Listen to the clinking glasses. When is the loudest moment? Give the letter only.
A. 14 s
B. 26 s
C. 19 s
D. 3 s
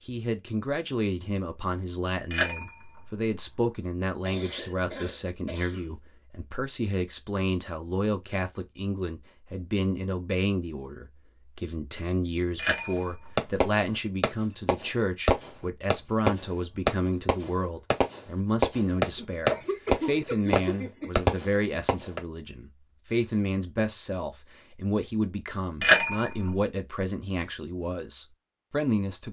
B.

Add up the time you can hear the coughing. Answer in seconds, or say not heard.
4 s.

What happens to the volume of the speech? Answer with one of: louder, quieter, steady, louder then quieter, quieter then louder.
steady.